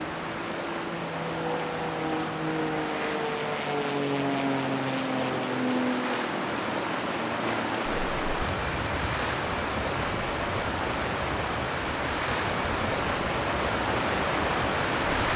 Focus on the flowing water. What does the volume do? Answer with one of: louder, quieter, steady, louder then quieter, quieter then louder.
louder.